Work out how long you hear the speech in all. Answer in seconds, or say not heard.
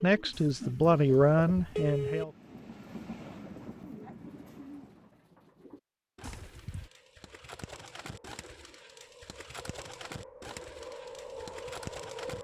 2 s.